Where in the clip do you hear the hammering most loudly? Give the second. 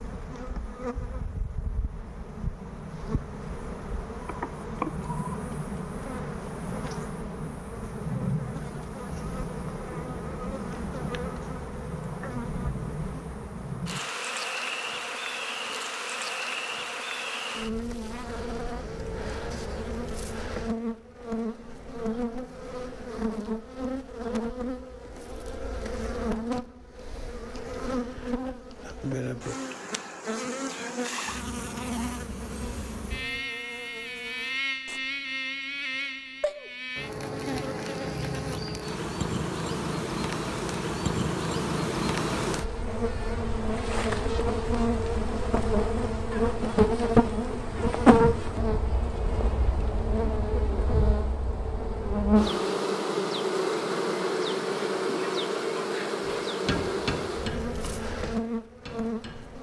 57 s.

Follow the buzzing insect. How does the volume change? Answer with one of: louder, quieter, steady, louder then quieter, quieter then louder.
louder.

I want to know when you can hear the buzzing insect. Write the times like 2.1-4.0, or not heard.
0.0-59.5.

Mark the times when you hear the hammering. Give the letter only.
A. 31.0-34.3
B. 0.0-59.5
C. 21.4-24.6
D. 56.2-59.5
D.